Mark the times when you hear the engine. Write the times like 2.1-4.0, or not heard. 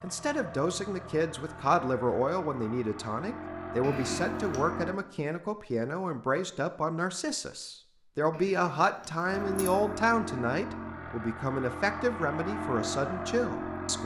0.0-5.0, 9.2-14.0.